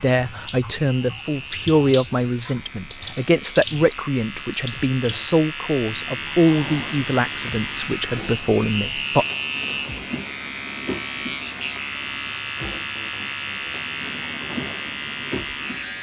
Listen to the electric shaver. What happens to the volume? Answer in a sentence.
The volume of the electric shaver goes up.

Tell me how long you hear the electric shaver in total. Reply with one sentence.
You can hear the electric shaver for 16 seconds altogether.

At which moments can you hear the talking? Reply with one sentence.
The talking can be heard from 0.0 to 9.2 s.